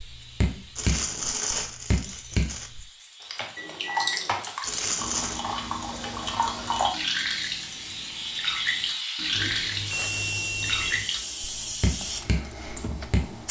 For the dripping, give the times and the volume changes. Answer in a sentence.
The dripping can be heard from 0.0 to 13.4 s, at a steady volume.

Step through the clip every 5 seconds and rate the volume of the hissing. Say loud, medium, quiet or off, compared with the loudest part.
quiet, loud, loud.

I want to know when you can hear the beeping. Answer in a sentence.
The beeping can be heard from 3.5 to 4.5 s and from 9.3 to 11.1 s.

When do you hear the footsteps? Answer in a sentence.
You can't hear the footsteps here.